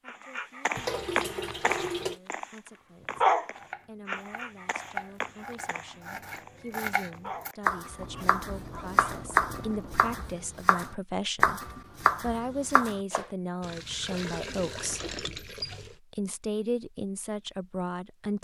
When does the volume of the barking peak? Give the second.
3 s.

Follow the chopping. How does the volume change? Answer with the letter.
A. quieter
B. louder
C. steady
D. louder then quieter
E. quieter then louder
B.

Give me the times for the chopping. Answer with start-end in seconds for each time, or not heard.
2.7-13.2.